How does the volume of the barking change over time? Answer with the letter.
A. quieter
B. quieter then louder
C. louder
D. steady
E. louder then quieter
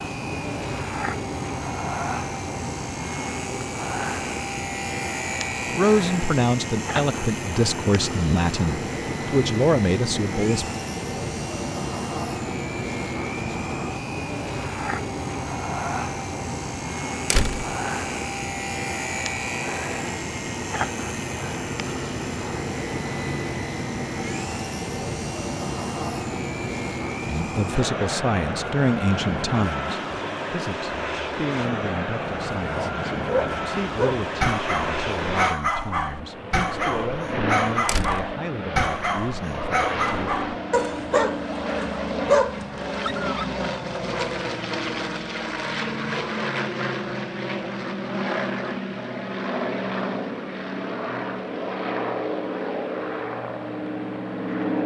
D.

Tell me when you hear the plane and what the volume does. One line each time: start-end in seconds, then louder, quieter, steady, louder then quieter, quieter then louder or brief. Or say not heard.
0.0-54.8 steady.